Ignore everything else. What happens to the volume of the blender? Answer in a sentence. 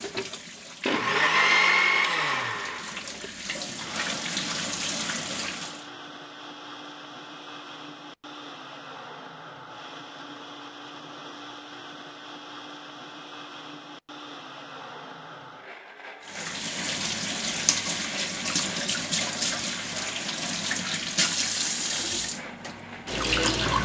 The volume of the blender goes down.